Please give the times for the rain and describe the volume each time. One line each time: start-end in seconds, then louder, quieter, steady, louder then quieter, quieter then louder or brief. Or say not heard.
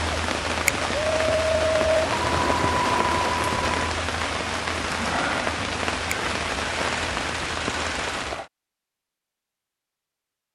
0.0-8.5 steady.